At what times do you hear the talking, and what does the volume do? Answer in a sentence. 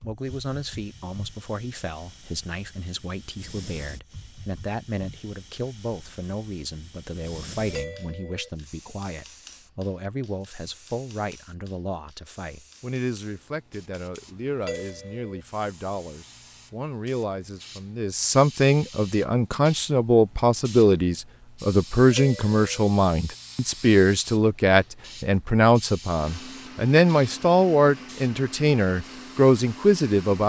You can hear the talking from 0.0 to 30.4 s, getting louder.